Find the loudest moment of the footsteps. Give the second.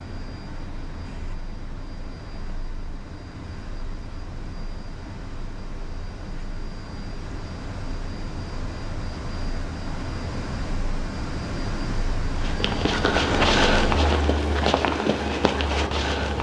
14 s.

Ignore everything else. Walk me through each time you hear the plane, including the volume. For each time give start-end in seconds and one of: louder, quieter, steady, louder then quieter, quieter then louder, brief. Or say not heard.
0.0-16.3 louder.